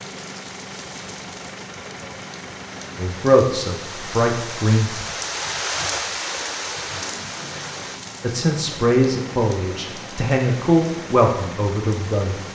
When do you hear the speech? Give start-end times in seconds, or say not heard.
3.0-5.0, 8.2-12.3.